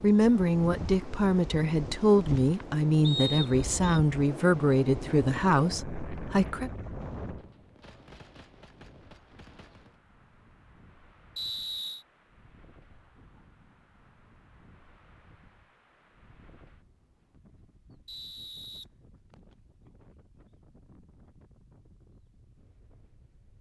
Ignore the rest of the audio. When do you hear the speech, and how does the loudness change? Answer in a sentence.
The speech can be heard from 0.0 to 6.7 s, at a steady volume.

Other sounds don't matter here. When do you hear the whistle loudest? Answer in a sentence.
The loudest moment of the whistle is at 3 seconds.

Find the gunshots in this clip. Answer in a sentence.
You can hear the gunshots from 7.0 to 10.0 s.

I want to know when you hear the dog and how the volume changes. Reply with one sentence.
The dog can't be heard in this clip.